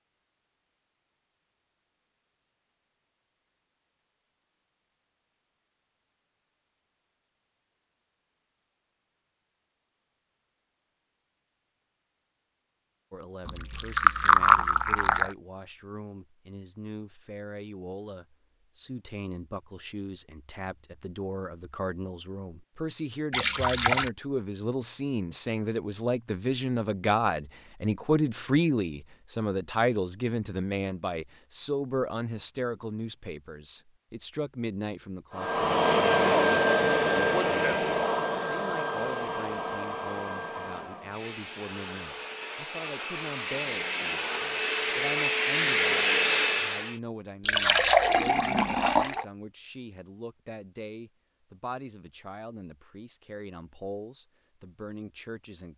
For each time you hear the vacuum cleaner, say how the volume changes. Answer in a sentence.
You can hear the vacuum cleaner from 35.3 to 47.0 s, getting quieter then louder.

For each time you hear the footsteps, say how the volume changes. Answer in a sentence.
You can't hear the footsteps here.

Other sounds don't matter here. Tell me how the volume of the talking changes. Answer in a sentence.
The volume of the talking goes up, then down.